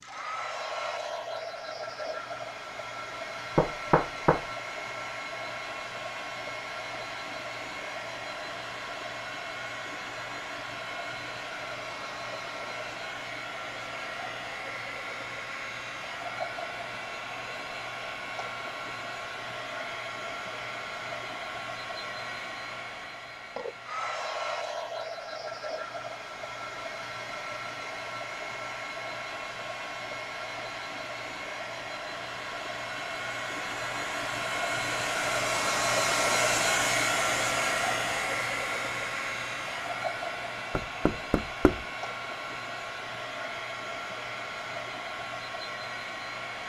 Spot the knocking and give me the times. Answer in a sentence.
The knocking can be heard from 3.5 to 4.5 s and from 40.8 to 41.8 s.